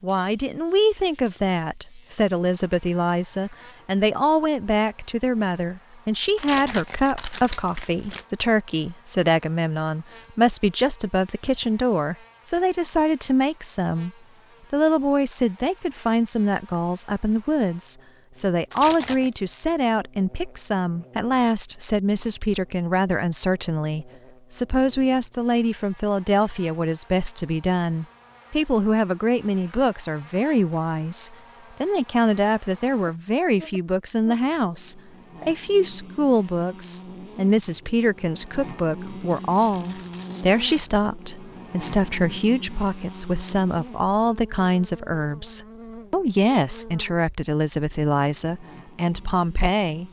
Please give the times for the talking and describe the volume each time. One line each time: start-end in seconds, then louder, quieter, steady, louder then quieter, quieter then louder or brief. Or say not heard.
0.0-14.1 steady
14.7-50.0 steady.